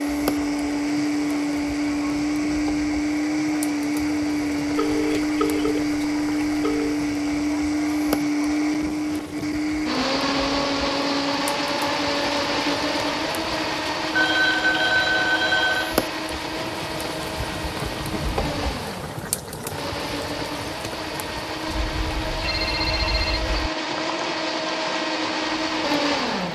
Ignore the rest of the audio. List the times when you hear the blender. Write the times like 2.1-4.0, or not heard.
0.0-26.5.